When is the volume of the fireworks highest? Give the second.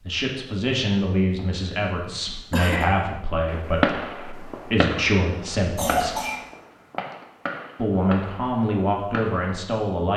4 s.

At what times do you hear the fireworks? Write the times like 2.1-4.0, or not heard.
3.5-9.6.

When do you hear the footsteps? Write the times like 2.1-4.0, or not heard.
not heard.